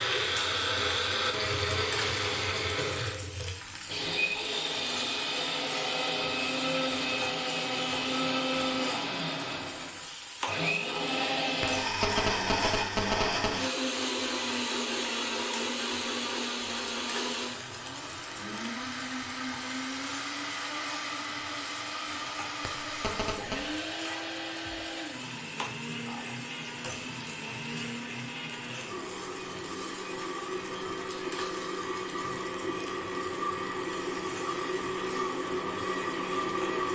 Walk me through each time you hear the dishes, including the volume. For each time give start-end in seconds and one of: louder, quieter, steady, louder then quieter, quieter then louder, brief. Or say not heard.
not heard.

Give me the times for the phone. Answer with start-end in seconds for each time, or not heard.
11.6-13.6, 22.6-23.7.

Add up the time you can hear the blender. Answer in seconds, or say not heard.
37 s.